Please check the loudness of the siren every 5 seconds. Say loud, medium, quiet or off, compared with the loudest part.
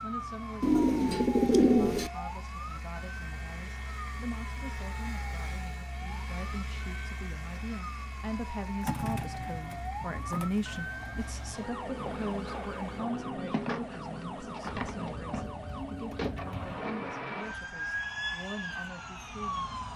medium, medium, loud, loud.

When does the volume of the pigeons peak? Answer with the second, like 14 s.
2 s.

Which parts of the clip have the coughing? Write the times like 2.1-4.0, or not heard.
not heard.